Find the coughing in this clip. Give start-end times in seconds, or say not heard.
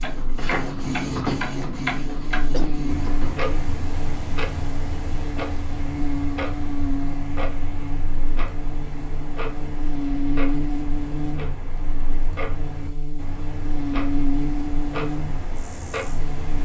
2.5-3.1.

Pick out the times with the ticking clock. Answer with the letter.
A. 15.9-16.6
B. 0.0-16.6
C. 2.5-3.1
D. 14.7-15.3
B.